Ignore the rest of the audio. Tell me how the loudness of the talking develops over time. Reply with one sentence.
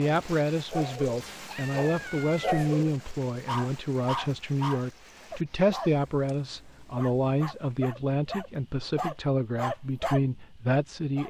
The volume of the talking stays about the same.